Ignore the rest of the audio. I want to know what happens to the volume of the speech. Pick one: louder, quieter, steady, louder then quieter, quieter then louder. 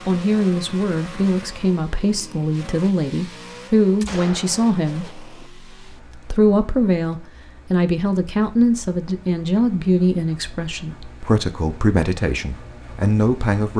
steady.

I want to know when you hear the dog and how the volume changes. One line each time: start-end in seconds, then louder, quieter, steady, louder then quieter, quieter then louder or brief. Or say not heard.
not heard.